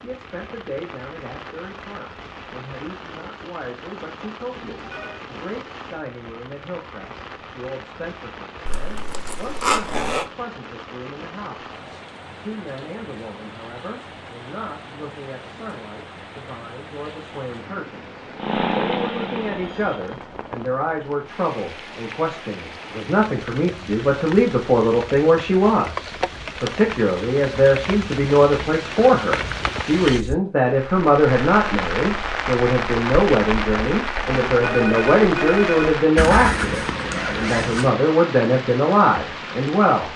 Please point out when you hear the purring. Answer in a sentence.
The purring can be heard from 18.4 to 20.1 s.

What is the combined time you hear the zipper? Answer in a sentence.
You can hear the zipper for 3 seconds altogether.